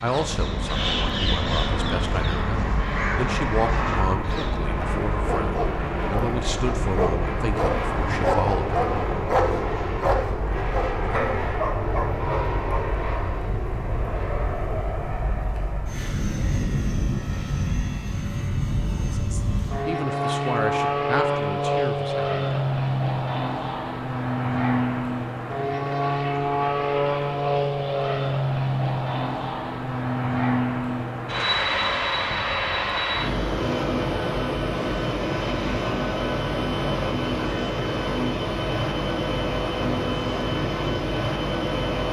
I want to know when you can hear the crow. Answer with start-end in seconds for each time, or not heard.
0.0-4.5.